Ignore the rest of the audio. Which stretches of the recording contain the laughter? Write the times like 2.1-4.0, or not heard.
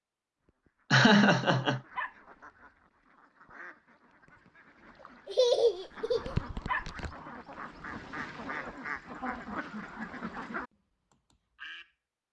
0.9-1.8, 5.2-6.3, 8.5-10.5.